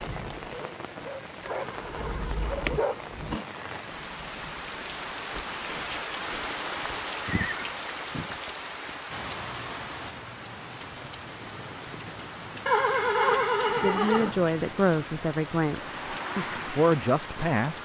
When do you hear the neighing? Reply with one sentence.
The neighing can be heard from 1.4 to 3.5 s, from 6.8 to 8.3 s and from 12.7 to 14.4 s.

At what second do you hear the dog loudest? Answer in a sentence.
The loudest moment of the dog is at 3 seconds.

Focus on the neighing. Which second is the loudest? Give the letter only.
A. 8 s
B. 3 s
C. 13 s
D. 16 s
C.